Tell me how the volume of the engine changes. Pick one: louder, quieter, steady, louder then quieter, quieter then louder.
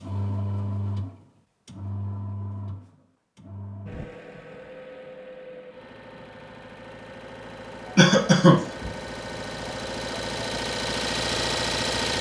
quieter then louder.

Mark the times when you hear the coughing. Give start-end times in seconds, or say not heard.
8.0-8.7.